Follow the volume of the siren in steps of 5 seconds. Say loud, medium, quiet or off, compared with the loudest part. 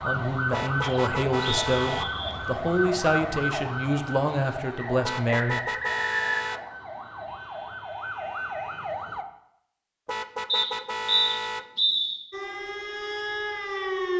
loud, medium, loud.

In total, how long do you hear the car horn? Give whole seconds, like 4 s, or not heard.
5 s.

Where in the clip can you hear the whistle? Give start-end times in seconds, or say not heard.
0.8-2.4, 4.8-6.6, 10.4-12.2.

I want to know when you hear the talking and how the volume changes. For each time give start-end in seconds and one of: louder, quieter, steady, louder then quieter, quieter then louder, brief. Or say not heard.
0.0-5.6 steady.